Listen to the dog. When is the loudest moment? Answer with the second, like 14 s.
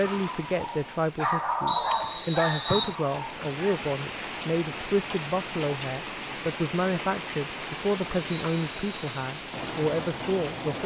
2 s.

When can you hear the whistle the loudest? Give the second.
2 s.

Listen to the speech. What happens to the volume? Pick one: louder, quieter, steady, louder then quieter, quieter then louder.
steady.